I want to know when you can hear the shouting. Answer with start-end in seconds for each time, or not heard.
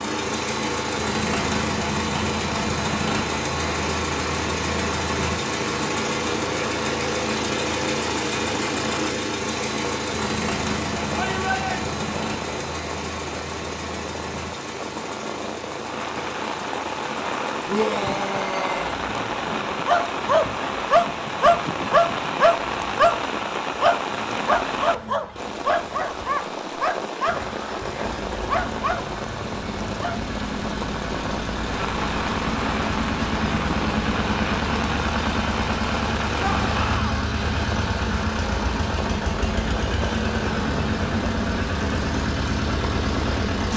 11.1-11.8, 17.6-18.9, 36.4-37.2.